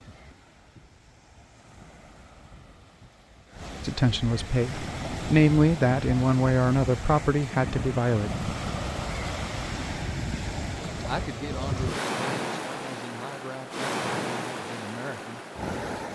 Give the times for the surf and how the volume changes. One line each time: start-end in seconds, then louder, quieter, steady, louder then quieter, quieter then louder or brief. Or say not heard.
0.0-16.1 louder.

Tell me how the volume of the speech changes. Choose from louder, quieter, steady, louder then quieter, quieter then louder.
quieter.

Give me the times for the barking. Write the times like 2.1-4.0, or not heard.
not heard.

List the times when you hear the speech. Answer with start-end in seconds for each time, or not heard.
3.9-8.4, 11.1-15.4.